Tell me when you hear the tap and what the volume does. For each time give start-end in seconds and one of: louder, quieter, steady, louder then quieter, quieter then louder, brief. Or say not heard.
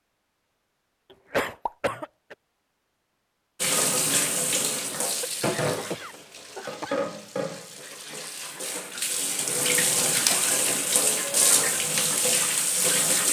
3.6-13.2 quieter then louder.